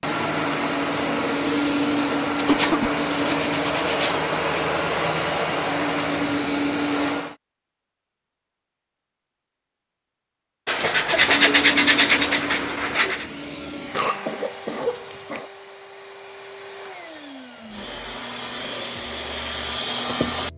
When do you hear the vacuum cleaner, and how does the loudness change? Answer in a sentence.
You can hear the vacuum cleaner from 0.0 to 7.3 s, at a steady volume; and from 11.1 to 20.5 s, getting quieter then louder.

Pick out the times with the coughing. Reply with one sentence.
You can hear the coughing from 2.5 to 3.0 s, from 10.8 to 11.5 s and from 13.9 to 15.4 s.